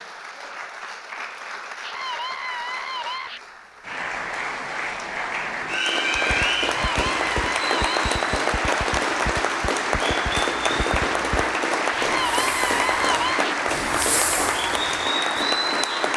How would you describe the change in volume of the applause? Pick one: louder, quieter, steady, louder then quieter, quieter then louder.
louder.